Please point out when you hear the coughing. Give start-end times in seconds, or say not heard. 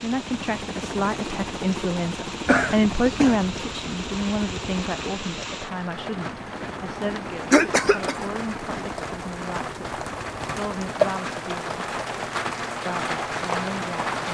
2.5-3.5, 7.5-8.2.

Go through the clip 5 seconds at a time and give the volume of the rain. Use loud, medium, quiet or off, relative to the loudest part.
medium, medium, loud.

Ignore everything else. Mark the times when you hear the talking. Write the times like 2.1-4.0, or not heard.
0.0-11.8, 12.8-14.2.